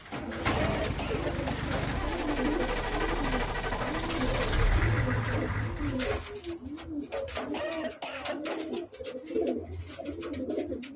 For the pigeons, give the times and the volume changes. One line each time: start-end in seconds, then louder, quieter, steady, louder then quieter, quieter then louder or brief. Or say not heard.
0.0-10.9 steady.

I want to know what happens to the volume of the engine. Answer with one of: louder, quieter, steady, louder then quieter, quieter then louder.
steady.